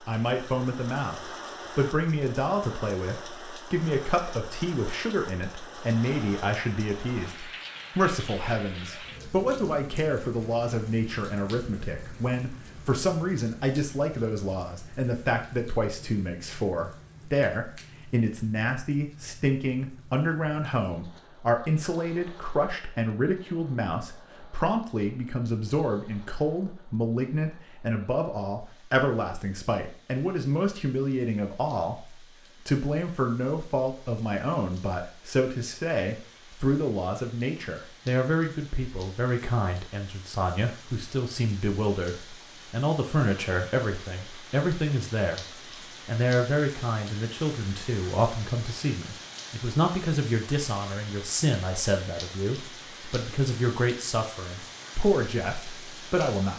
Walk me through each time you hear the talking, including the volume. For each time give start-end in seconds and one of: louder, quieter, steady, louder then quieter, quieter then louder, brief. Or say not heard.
0.1-56.5 steady.